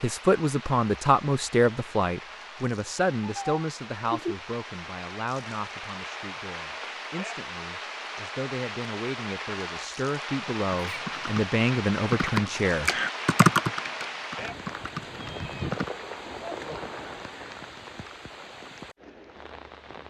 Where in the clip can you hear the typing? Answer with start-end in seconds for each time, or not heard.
10.8-15.9.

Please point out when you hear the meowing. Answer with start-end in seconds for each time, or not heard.
3.2-4.3, 10.8-11.3, 14.3-15.8.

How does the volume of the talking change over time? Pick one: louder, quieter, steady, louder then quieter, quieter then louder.
quieter then louder.